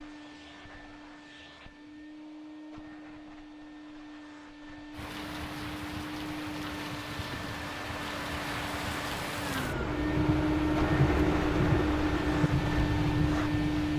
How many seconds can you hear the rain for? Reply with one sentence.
The rain can be heard for 9 seconds in total.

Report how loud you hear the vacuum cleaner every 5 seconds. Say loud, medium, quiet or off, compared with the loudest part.
quiet, medium, loud.